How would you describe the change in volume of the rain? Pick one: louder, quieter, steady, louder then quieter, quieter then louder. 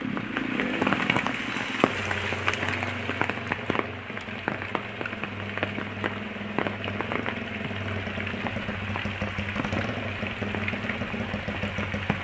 quieter.